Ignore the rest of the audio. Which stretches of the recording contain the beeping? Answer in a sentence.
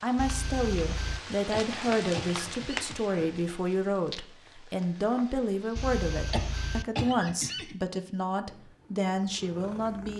You can hear the beeping from 0.1 to 1.2 s and from 5.8 to 6.8 s.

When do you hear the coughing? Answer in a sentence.
You can hear the coughing from 1.5 to 3.5 s and from 6.3 to 7.8 s.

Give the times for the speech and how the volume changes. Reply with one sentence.
The speech can be heard from 0.0 to 10.1 s, at a steady volume.